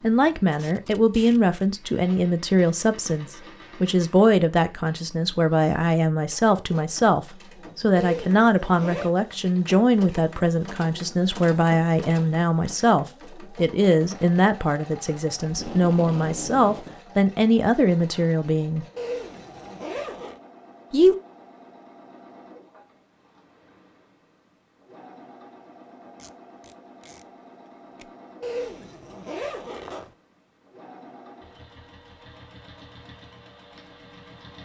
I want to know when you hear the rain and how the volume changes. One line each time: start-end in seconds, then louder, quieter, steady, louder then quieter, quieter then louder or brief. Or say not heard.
not heard.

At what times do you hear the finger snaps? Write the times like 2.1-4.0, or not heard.
not heard.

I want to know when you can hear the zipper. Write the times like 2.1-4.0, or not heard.
8.0-9.1, 18.9-20.4, 28.4-30.1.